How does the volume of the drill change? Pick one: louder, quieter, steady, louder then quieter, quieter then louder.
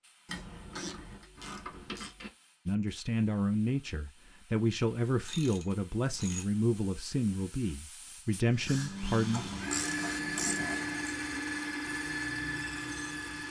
steady.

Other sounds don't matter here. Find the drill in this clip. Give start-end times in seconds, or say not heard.
8.7-13.4.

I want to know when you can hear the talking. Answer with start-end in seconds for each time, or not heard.
2.6-9.5.